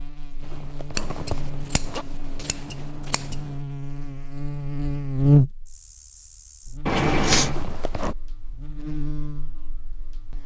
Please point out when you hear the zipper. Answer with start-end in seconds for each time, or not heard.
0.4-2.0, 7.5-8.2.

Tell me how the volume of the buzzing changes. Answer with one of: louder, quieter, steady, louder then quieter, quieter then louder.
louder then quieter.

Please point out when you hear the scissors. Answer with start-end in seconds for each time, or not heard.
0.9-3.4, 6.8-7.5.